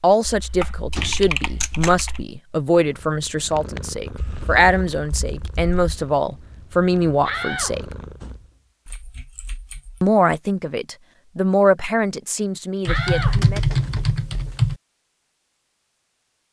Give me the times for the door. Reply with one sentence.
The door can be heard from 0.9 to 1.8 s, from 7.2 to 8.9 s and from 12.8 to 14.6 s.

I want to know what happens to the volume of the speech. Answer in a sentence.
The volume of the speech stays about the same.